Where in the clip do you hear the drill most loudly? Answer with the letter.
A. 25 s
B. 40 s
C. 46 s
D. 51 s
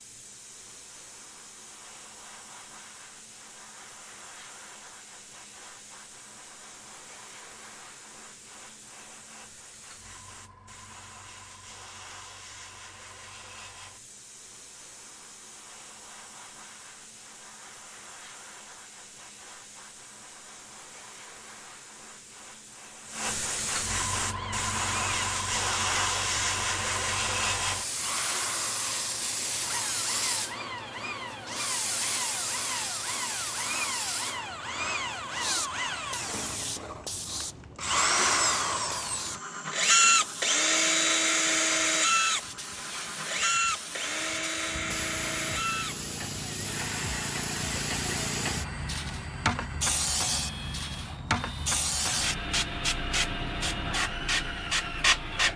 B.